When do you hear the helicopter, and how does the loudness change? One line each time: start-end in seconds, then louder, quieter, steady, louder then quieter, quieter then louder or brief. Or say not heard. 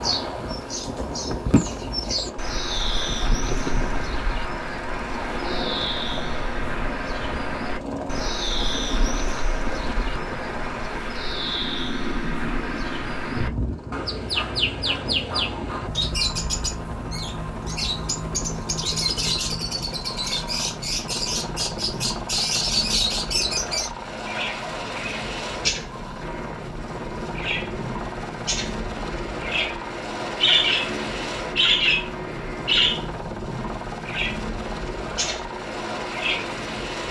0.0-37.0 steady.